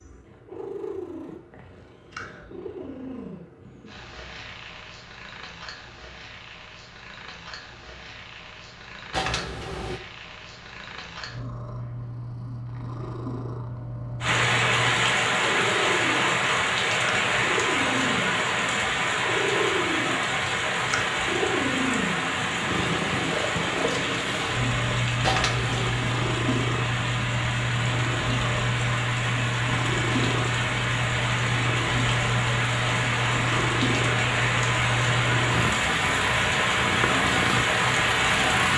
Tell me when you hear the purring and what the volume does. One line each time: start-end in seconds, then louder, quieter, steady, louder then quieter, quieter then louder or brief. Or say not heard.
0.0-38.7 louder.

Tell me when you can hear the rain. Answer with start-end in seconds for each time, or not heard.
14.2-38.7.